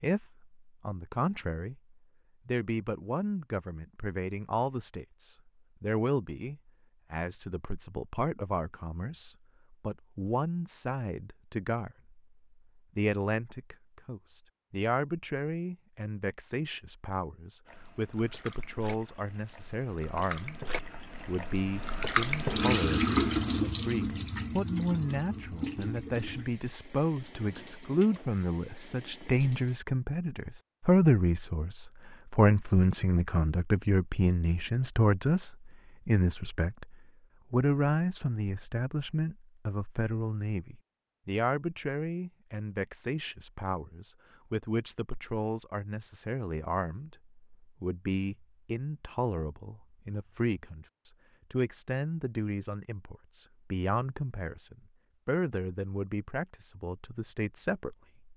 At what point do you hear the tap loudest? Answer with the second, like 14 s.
23 s.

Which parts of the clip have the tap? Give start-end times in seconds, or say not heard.
17.6-29.8.